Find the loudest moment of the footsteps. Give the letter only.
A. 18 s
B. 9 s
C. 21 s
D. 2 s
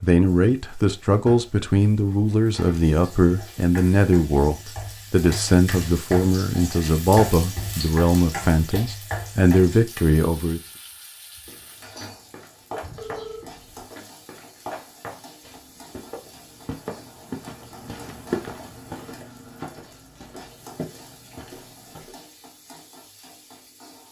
A.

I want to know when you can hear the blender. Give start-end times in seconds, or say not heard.
not heard.